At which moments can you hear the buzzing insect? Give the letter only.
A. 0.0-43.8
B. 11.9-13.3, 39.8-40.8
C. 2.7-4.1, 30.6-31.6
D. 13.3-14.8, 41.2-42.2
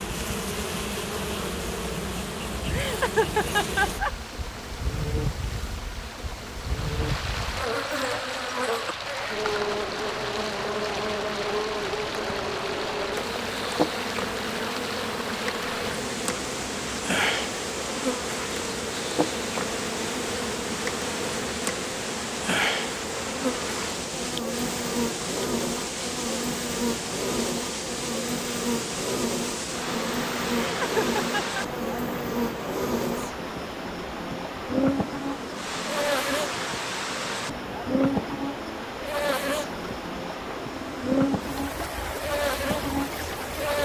A.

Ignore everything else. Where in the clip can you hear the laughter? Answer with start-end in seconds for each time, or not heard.
2.7-4.1, 30.6-31.6.